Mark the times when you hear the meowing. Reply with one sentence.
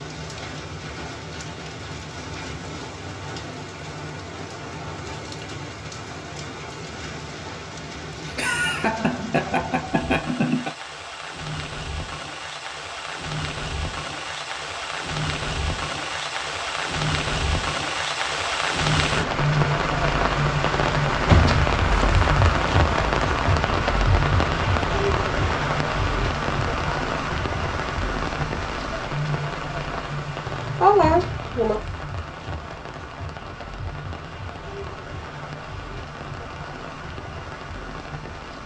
The meowing can't be heard in this clip.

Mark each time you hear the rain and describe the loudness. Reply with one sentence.
You can hear the rain from 0.0 to 38.6 s, getting louder then quieter.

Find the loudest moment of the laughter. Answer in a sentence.
The loudest moment of the laughter is at 31 seconds.